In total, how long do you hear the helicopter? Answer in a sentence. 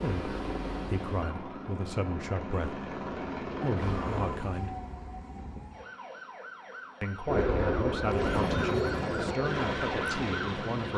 You can hear the helicopter for 7 seconds altogether.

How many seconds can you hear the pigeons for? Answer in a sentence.
You can hear the pigeons for 4 seconds altogether.